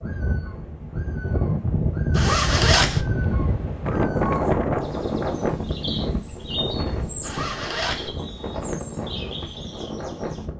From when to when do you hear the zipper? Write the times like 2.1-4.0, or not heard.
2.1-3.0, 7.2-8.1.